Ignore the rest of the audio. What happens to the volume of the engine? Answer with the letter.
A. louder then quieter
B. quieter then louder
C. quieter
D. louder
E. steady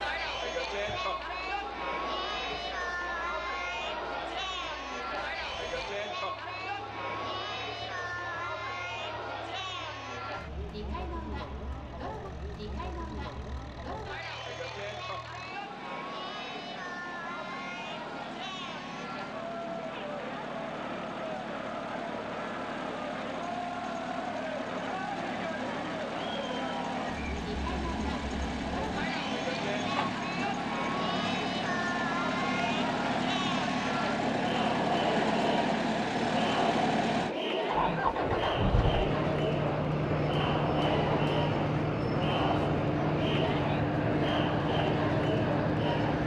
D.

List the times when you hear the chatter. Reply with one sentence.
You can hear the chatter from 0.0 to 46.2 s.